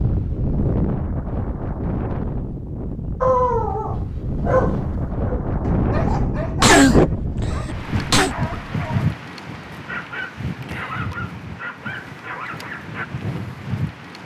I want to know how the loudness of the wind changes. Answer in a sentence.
The loudness of the wind goes down.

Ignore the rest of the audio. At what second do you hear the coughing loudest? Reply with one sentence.
The volume of the coughing peaks at 7 seconds.